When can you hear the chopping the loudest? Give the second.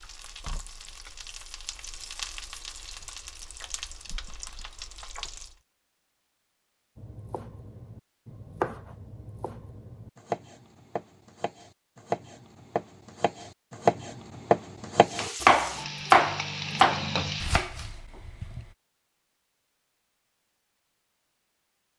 16 s.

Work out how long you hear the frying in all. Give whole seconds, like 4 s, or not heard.
8 s.